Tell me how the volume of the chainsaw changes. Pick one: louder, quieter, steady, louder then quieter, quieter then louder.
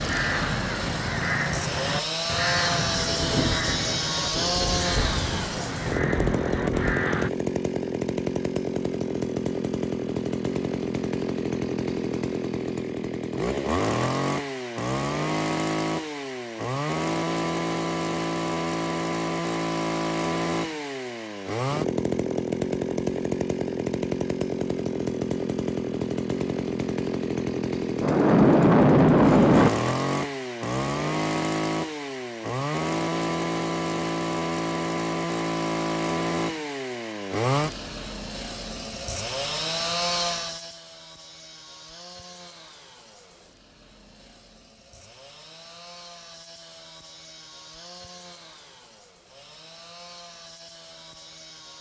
quieter.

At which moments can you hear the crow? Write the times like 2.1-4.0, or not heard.
0.0-7.3.